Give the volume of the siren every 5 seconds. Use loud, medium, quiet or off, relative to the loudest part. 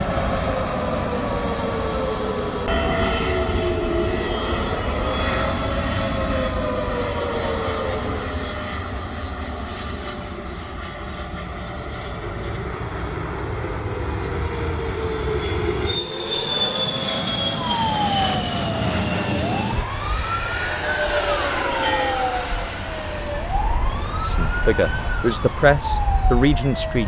loud, loud, off, loud, loud, loud.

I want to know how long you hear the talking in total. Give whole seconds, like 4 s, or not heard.
3 s.